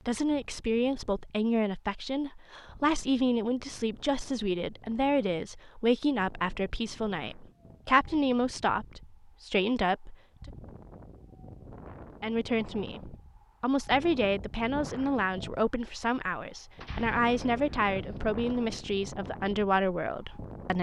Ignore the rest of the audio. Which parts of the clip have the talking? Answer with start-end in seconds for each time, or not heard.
0.1-10.5, 12.2-20.7.